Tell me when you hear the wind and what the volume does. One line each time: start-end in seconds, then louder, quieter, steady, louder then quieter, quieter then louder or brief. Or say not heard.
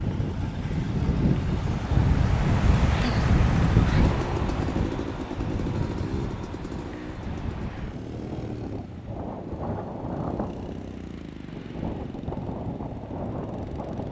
0.0-14.0 quieter.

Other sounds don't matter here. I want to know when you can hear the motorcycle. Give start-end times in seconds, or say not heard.
0.0-14.0.